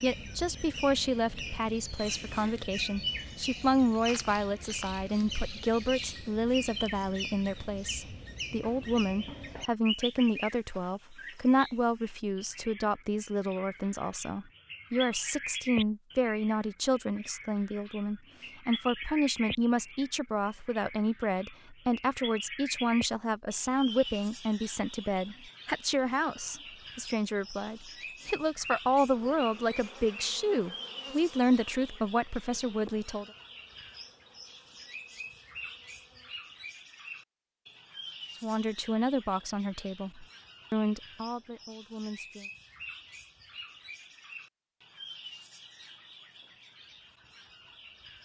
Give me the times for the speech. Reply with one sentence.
You can hear the speech from 0.0 to 33.2 s and from 38.4 to 42.5 s.